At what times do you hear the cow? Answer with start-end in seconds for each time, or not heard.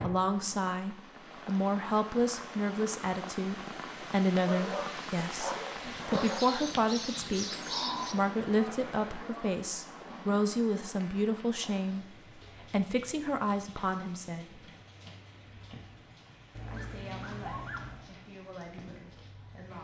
5.8-9.5.